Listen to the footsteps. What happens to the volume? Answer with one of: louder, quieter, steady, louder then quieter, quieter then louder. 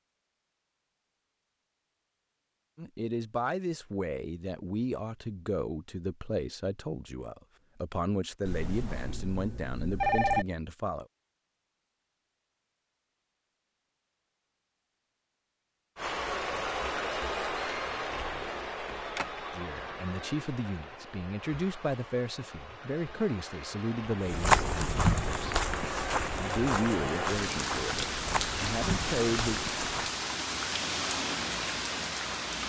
quieter.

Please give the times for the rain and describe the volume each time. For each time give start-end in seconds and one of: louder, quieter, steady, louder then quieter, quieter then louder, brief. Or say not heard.
15.9-32.6 quieter then louder.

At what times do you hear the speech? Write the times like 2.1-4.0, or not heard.
2.8-11.1, 19.5-25.6, 26.4-29.6.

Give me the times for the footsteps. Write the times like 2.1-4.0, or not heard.
24.2-30.1.